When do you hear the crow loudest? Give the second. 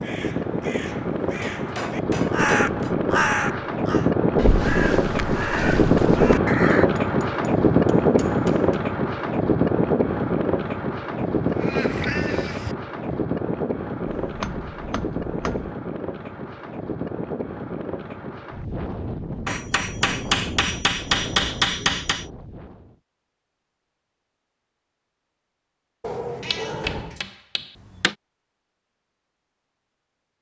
3 s.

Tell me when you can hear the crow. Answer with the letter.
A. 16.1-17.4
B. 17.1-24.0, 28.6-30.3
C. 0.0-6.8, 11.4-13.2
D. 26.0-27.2
C.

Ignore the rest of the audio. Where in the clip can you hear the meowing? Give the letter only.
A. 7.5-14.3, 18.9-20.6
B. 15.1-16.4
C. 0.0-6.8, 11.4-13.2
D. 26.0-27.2
D.